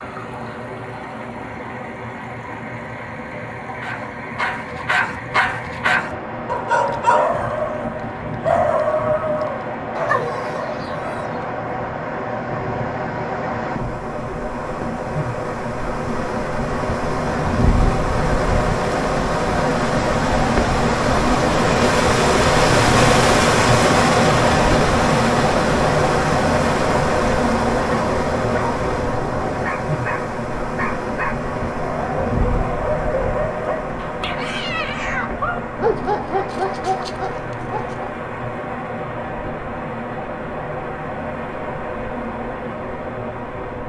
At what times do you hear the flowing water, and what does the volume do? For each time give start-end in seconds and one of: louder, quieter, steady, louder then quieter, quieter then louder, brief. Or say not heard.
0.0-43.8 louder then quieter.